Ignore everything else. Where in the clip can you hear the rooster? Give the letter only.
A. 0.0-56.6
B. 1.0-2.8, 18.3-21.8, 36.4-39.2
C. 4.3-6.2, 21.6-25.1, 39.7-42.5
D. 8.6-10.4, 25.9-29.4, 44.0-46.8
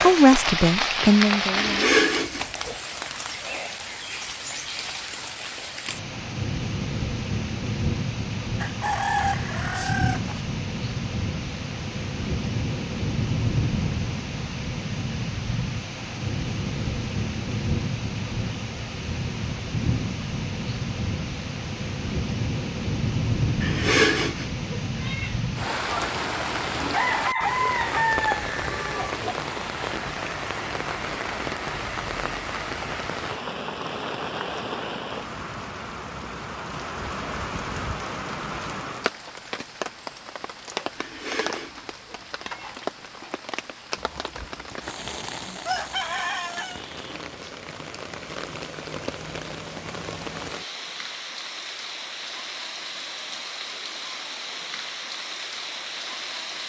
D.